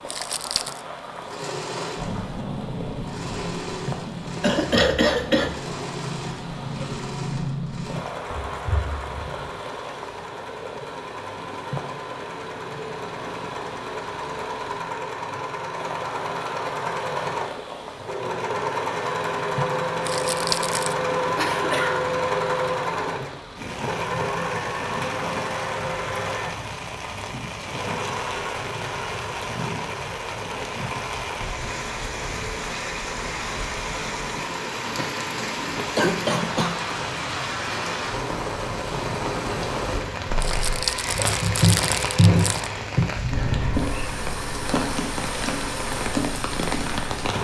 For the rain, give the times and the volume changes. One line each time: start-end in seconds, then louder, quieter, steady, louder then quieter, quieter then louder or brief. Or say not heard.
0.0-47.3 louder.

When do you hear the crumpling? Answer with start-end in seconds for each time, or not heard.
0.1-0.8, 20.1-20.9, 40.4-42.7.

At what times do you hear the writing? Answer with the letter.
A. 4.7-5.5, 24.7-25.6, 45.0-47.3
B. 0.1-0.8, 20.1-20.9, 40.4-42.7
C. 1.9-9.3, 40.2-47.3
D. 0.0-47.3
C.